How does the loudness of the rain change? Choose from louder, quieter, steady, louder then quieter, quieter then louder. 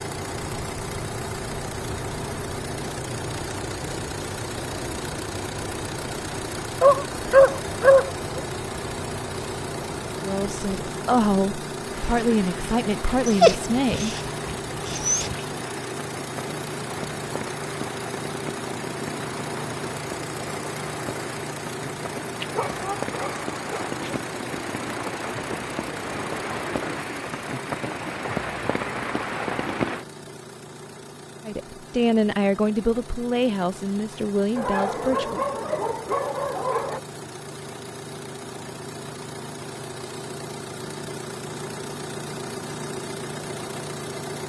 louder.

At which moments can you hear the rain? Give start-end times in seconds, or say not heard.
0.1-30.1.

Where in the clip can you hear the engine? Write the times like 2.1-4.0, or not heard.
0.0-44.4.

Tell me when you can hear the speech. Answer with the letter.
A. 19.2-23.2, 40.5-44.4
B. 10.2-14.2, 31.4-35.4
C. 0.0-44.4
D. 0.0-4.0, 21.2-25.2
B.